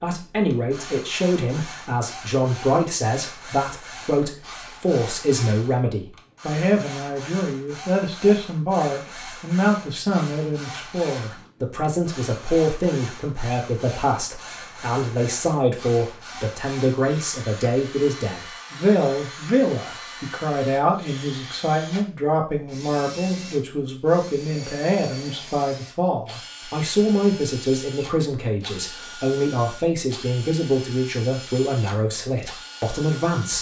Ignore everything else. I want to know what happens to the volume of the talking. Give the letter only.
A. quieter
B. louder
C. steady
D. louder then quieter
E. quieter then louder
C.